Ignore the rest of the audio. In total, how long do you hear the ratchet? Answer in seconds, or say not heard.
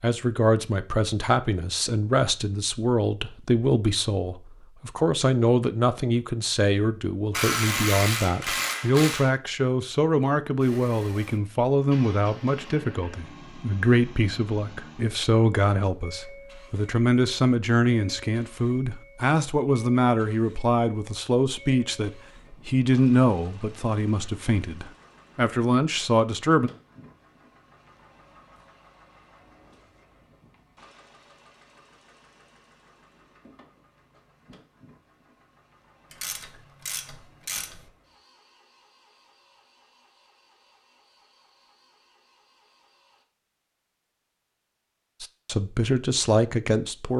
4 s.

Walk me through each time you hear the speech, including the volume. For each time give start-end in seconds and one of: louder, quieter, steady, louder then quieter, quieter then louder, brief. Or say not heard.
0.0-26.7 steady
45.2-47.1 brief.